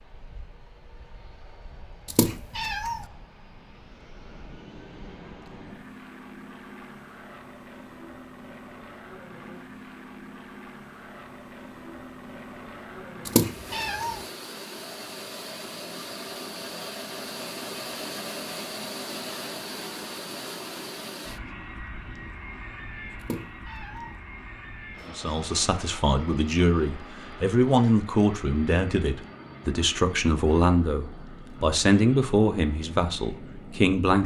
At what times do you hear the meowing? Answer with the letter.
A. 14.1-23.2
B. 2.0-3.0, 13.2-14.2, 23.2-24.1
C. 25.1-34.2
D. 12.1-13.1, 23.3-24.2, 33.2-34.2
B.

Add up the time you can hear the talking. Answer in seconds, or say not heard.
9 s.